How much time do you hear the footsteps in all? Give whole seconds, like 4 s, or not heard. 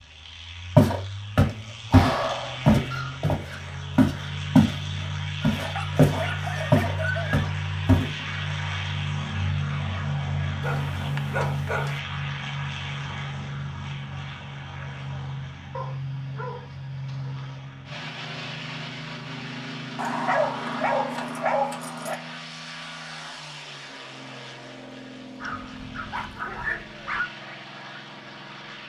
7 s.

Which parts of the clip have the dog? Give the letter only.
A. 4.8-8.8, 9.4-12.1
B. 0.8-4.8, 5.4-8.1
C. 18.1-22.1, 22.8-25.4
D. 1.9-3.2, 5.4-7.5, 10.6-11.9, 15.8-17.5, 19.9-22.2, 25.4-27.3
D.